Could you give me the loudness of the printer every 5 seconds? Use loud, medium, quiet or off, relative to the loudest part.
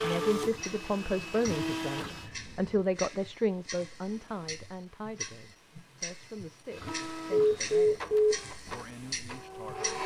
loud, medium.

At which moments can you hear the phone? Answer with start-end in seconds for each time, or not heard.
2.1-2.9, 7.3-8.3.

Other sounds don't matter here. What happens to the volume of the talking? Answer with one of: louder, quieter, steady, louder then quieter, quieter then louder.
quieter.